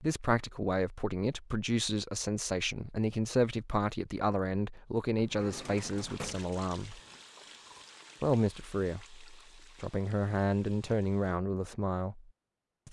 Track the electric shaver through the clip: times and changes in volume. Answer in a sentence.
The electric shaver can't be heard in this clip.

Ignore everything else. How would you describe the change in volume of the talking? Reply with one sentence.
The loudness of the talking stays about the same.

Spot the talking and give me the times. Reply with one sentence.
The talking can be heard from 0.0 to 7.0 s and from 8.2 to 12.8 s.